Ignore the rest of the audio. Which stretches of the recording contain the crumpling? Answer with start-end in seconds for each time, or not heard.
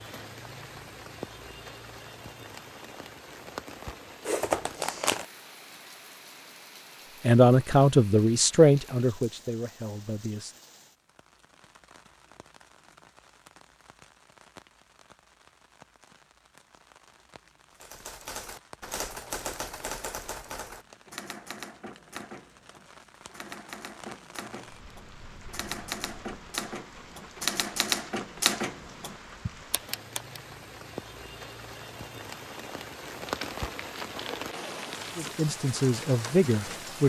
4.2-5.2, 33.2-35.4.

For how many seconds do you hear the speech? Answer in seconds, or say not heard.
5 s.